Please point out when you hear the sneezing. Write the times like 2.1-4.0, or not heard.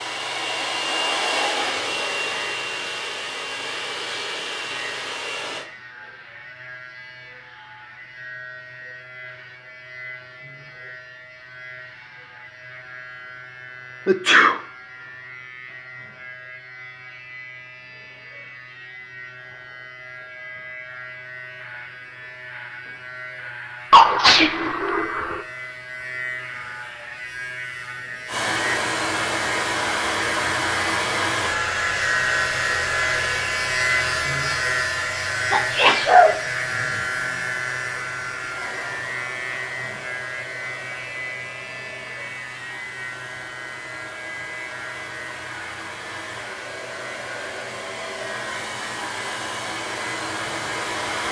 14.1-14.6, 23.9-25.4, 35.5-36.4.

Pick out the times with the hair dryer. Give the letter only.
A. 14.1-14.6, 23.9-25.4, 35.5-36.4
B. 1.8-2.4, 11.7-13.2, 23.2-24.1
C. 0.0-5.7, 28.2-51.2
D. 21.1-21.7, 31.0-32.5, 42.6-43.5
C.